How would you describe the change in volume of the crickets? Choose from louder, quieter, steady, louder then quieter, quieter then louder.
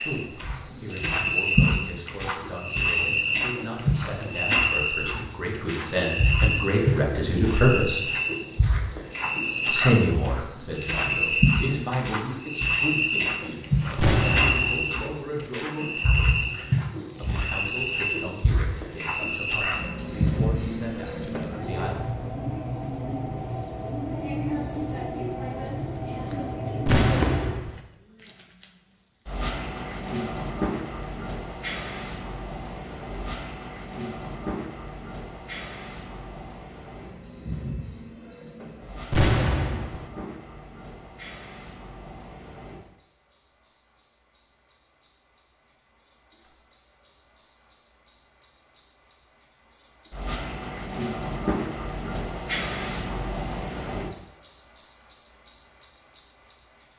quieter then louder.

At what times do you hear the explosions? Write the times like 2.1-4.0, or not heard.
13.9-14.9, 26.9-27.8, 39.1-40.1.